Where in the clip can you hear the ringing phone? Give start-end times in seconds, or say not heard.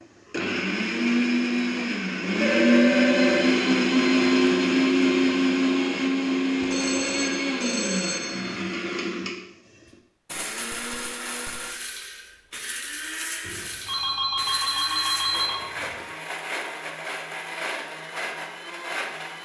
2.4-3.6, 6.6-8.6, 13.4-16.1.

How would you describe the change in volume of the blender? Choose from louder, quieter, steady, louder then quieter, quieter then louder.
quieter.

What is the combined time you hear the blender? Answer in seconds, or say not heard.
19 s.